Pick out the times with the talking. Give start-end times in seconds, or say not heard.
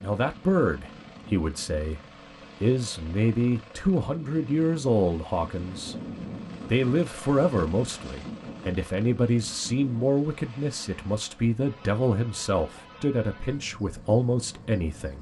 0.0-2.0, 2.6-6.0, 6.7-15.1.